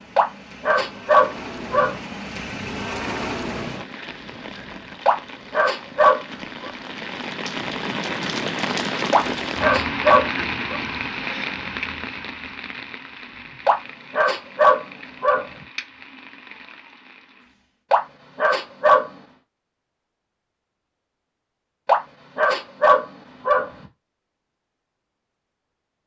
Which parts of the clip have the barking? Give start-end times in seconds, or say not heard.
0.1-1.9, 5.0-6.7, 9.1-10.8, 13.7-15.4, 17.9-19.1, 21.9-23.7.